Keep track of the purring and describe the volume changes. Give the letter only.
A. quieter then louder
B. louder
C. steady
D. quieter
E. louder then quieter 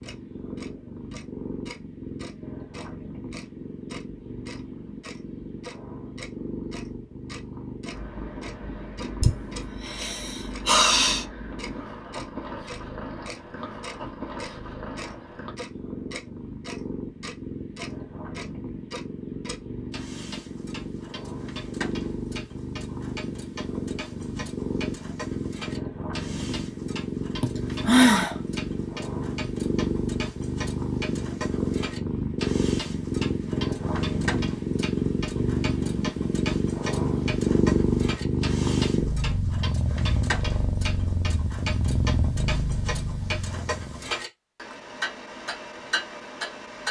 B.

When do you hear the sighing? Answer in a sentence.
The sighing can be heard from 9.2 to 11.2 s and from 27.4 to 28.4 s.